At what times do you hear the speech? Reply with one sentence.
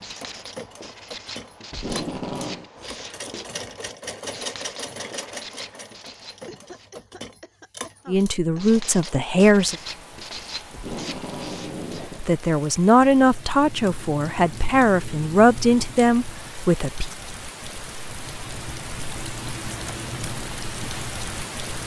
You can hear the speech from 8.1 to 9.8 s and from 12.2 to 17.1 s.